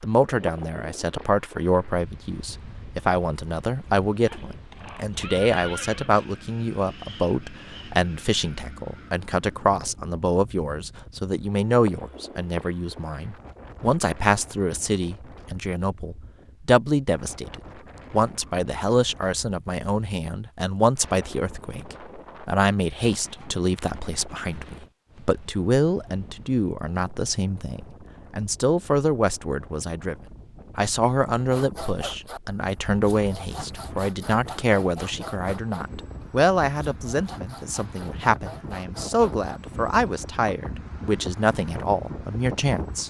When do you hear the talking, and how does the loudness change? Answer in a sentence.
You can hear the talking from 0.0 to 43.0 s, at a steady volume.